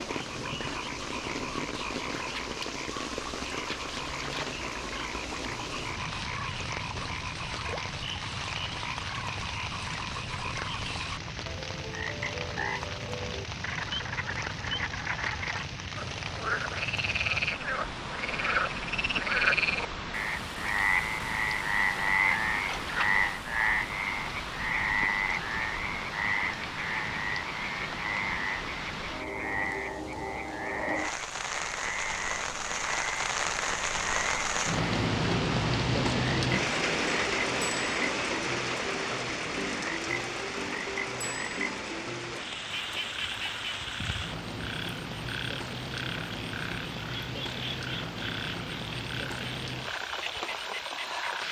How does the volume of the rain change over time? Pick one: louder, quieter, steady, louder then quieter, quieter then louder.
louder then quieter.